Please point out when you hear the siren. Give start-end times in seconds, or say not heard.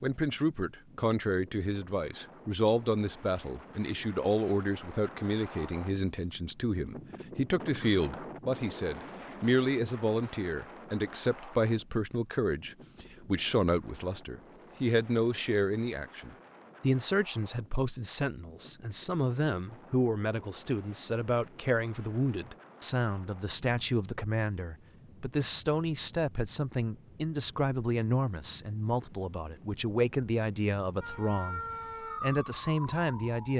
31.0-33.5.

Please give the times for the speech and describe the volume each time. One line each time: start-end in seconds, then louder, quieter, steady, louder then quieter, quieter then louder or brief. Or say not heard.
0.0-33.5 steady.